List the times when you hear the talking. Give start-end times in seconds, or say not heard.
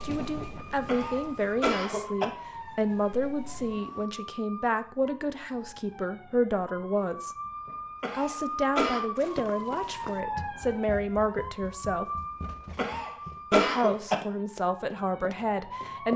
0.0-7.3, 8.1-12.1, 13.5-16.1.